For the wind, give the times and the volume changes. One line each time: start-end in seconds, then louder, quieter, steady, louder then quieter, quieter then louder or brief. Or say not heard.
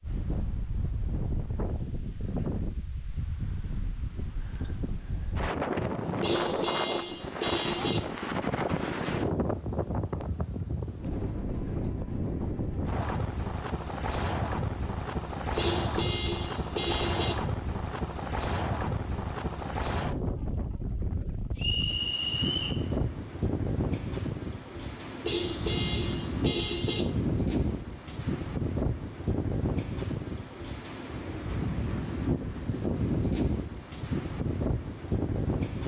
0.0-35.8 steady.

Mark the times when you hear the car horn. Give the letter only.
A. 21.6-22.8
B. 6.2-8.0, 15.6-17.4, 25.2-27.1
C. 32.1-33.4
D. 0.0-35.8
B.